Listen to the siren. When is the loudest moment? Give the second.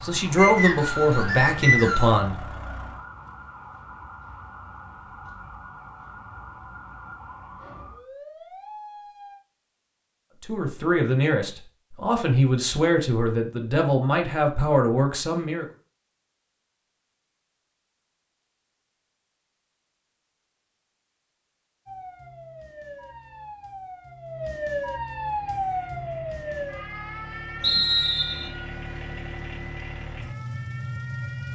25 s.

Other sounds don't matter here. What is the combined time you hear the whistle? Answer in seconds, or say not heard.
3 s.